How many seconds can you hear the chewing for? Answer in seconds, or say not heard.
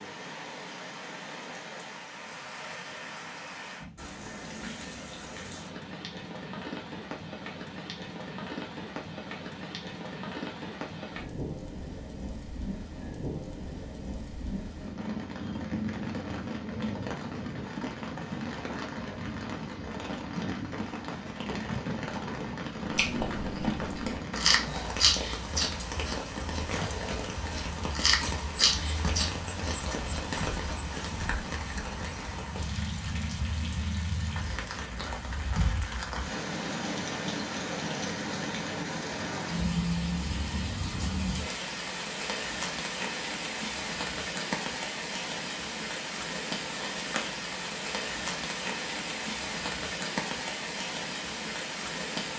8 s.